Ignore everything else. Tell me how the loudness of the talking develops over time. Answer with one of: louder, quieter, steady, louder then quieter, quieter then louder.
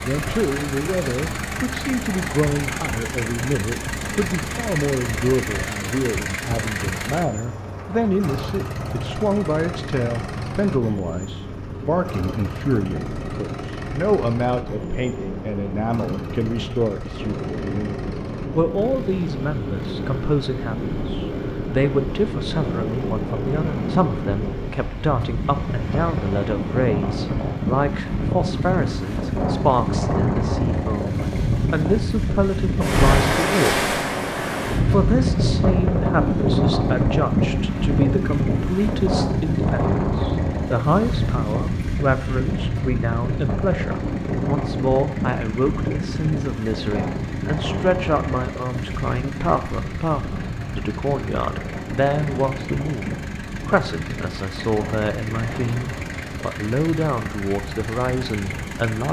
steady.